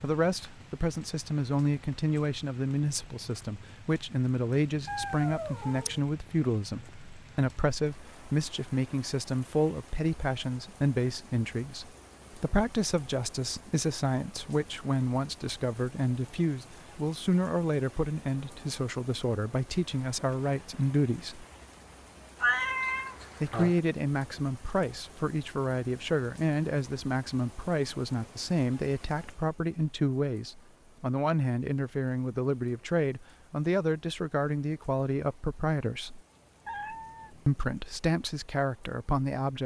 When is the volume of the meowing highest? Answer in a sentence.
The loudest moment of the meowing is at 23 seconds.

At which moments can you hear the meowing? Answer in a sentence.
You can hear the meowing from 4.8 to 6.0 s, from 22.4 to 23.8 s and from 36.6 to 37.7 s.